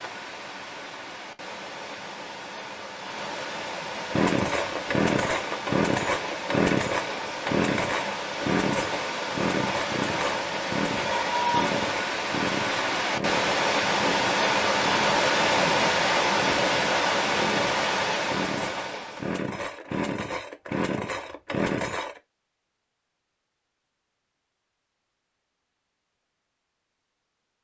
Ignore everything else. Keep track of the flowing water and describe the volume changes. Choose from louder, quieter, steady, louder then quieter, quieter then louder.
louder.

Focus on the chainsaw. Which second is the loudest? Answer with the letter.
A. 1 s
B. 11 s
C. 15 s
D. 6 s
D.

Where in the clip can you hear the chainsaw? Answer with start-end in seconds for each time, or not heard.
4.1-22.2.